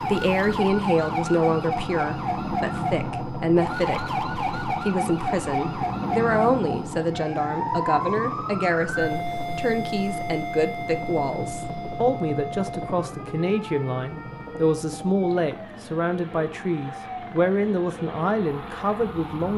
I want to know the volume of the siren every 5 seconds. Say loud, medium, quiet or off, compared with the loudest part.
loud, loud, medium, medium.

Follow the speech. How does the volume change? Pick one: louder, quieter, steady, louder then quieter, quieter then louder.
steady.